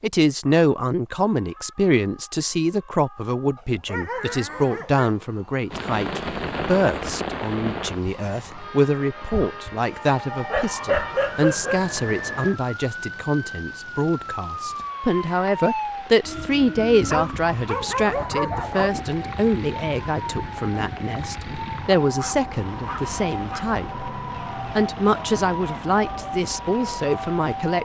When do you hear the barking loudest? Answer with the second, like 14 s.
11 s.